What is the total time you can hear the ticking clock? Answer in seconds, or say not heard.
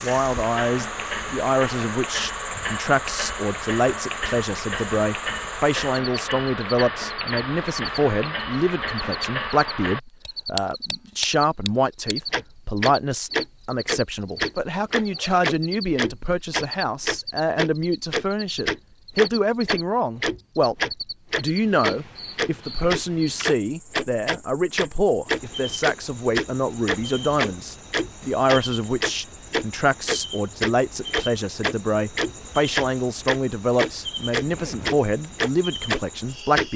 37 s.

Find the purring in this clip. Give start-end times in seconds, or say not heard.
not heard.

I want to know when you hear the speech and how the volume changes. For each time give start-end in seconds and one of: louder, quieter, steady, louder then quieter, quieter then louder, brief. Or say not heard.
0.0-20.8 steady
21.4-36.7 steady.